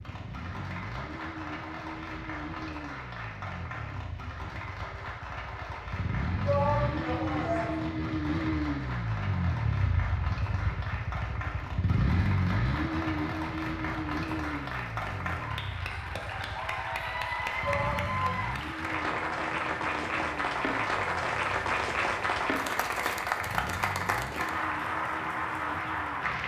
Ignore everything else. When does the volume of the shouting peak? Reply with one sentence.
The volume of the shouting peaks at 7 seconds.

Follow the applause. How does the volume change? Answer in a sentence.
The loudness of the applause goes up.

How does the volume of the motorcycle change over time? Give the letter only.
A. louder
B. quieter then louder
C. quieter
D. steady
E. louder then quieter
E.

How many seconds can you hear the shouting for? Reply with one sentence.
The shouting can be heard for 2 seconds in total.